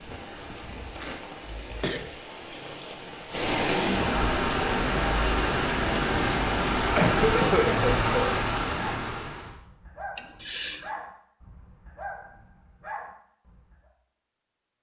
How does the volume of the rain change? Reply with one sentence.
The volume of the rain goes up.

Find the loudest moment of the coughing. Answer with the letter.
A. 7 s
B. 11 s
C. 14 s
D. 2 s
A.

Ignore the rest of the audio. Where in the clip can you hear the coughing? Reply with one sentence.
The coughing can be heard from 0.7 to 2.0 s, from 7.0 to 8.3 s and from 10.2 to 10.9 s.